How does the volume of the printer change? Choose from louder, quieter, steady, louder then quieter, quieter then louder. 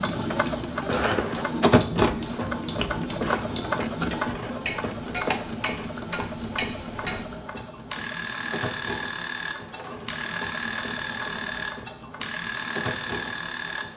quieter.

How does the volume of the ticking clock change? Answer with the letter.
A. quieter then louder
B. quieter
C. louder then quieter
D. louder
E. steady
D.